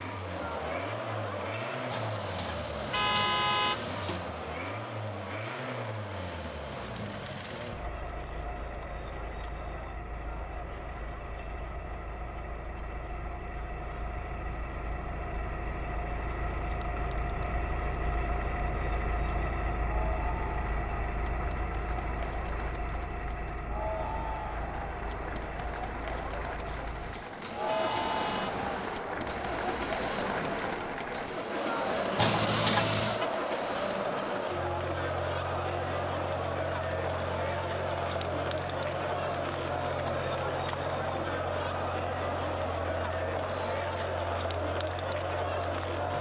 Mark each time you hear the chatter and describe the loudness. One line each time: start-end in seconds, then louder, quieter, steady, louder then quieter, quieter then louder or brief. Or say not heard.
0.0-46.1 quieter then louder.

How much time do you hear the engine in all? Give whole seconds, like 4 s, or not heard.
46 s.